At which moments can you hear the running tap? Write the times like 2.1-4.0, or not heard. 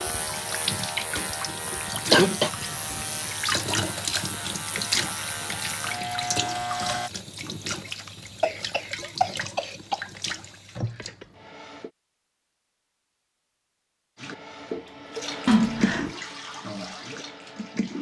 0.0-11.9, 14.2-17.9.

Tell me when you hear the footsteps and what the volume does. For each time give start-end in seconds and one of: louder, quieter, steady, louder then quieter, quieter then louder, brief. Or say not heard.
not heard.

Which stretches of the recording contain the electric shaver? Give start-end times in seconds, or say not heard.
0.0-7.1.